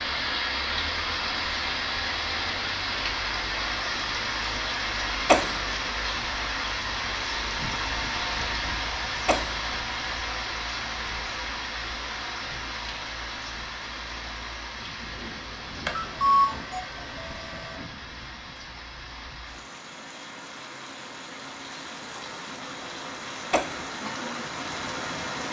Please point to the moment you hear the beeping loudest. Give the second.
16 s.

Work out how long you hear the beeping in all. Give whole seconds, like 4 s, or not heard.
2 s.